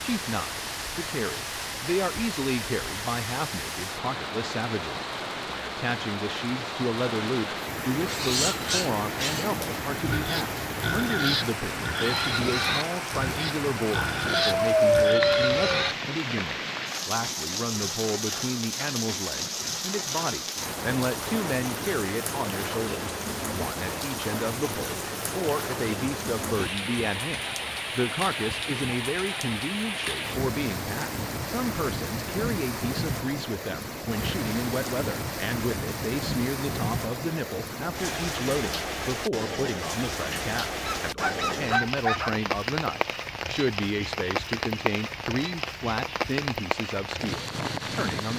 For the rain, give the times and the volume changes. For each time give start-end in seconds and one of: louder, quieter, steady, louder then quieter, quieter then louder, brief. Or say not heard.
0.0-48.3 steady.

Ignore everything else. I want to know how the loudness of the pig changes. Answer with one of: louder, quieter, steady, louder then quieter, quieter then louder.
steady.